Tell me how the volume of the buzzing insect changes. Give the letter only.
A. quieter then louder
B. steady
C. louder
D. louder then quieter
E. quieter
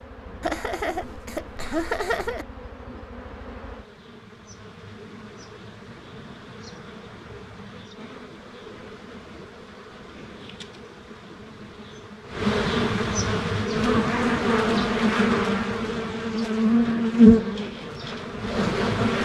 C.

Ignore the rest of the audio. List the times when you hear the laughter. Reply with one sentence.
The laughter can be heard from 0.4 to 2.5 s.